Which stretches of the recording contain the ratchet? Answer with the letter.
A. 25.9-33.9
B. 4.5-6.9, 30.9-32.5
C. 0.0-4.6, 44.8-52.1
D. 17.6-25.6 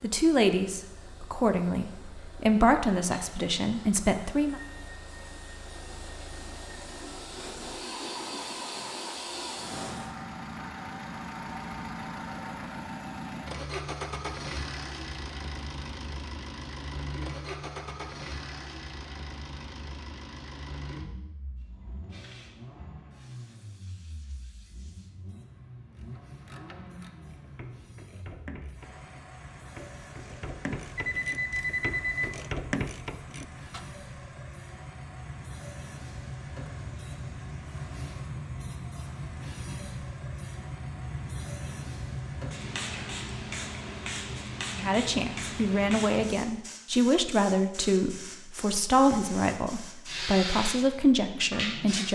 A.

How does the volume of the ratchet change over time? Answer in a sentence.
The loudness of the ratchet goes up.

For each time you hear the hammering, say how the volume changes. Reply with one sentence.
You can't hear the hammering here.